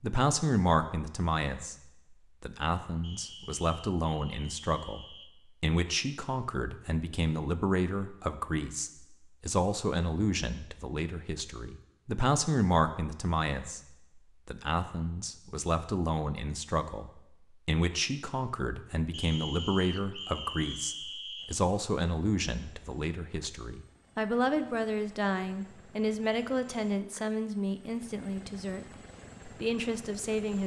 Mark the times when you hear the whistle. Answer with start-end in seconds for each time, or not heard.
3.0-5.3, 19.1-21.6.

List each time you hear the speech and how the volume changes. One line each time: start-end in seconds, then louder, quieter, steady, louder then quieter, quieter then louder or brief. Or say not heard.
0.0-28.9 steady
29.4-30.6 brief.